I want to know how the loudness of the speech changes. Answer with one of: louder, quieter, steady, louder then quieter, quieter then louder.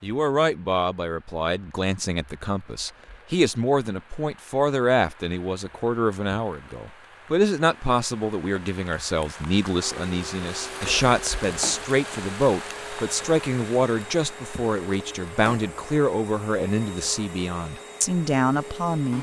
steady.